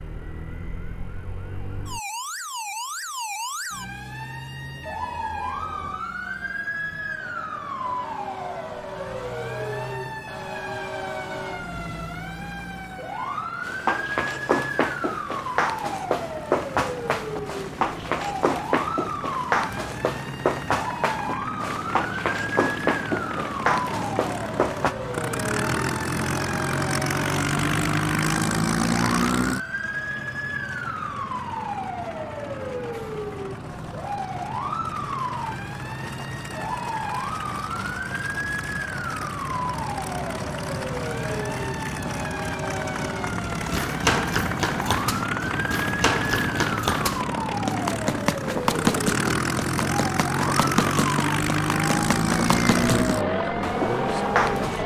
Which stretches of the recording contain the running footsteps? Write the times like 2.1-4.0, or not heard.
13.6-24.9, 43.5-54.8.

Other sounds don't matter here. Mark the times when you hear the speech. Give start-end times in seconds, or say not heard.
52.8-54.8.